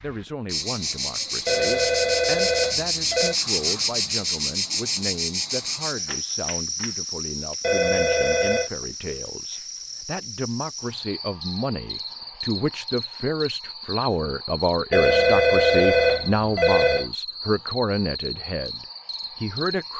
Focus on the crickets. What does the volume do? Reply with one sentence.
The volume of the crickets goes down.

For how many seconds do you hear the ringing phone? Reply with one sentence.
The ringing phone can be heard for 5 seconds in total.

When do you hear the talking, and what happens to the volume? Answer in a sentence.
You can hear the talking from 0.0 to 19.9 s, getting louder.